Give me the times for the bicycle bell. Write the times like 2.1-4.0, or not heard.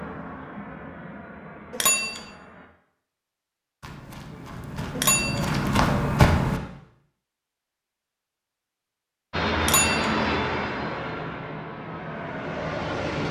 1.7-2.2, 5.0-5.5, 9.6-10.2.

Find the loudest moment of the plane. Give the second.
10 s.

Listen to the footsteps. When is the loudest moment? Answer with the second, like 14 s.
6 s.